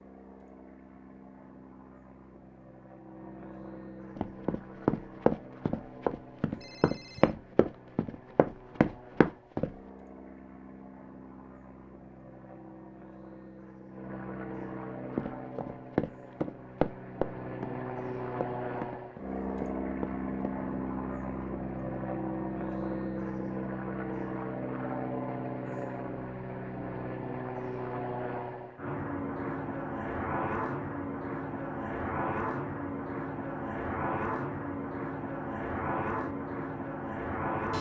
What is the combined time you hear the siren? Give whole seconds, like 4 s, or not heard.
not heard.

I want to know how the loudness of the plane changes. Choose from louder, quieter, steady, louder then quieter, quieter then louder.
louder.